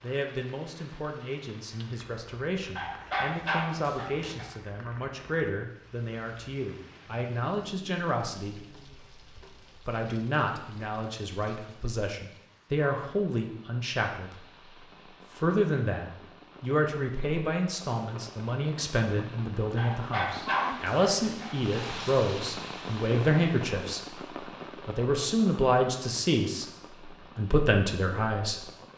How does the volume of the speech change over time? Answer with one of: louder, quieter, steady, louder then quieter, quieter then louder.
louder.